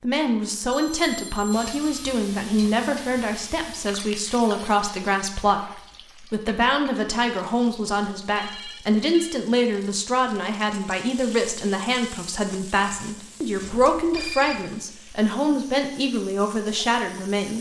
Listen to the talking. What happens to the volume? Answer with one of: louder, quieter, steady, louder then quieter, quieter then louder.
steady.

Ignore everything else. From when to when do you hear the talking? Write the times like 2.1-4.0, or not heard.
0.0-17.5.